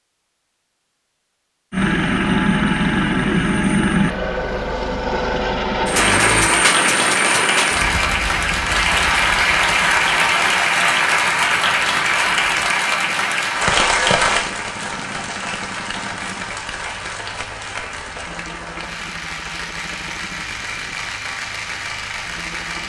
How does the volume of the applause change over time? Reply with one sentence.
The volume of the applause goes down.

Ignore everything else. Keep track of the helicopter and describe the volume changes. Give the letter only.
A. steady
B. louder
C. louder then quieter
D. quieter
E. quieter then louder
D.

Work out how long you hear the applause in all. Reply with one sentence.
You can hear the applause for 17 seconds altogether.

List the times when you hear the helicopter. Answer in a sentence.
You can hear the helicopter from 1.7 to 22.8 s.